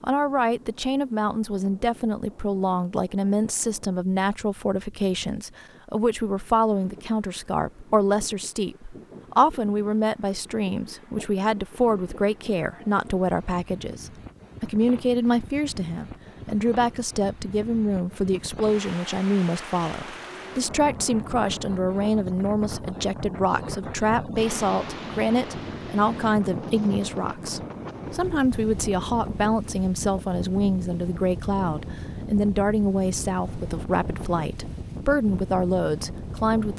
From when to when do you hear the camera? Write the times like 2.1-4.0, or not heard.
not heard.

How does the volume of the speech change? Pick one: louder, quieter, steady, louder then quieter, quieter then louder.
steady.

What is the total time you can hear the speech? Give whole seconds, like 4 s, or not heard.
37 s.